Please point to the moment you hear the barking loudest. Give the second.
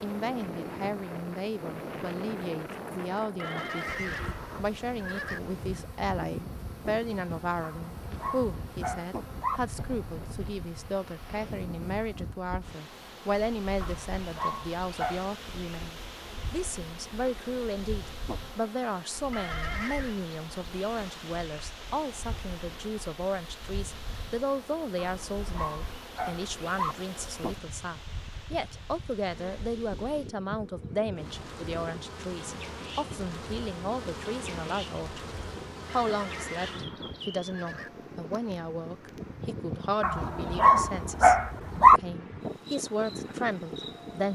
42 s.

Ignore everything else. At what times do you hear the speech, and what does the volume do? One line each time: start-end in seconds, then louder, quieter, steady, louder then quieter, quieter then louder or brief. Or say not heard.
0.0-41.4 steady
42.0-44.3 brief.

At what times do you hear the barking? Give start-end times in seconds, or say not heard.
7.6-9.6, 13.8-15.3, 25.0-26.9, 40.0-42.0.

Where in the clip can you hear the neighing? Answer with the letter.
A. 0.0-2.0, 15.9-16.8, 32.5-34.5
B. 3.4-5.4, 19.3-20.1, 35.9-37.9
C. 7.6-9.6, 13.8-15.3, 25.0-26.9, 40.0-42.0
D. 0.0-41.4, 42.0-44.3
B.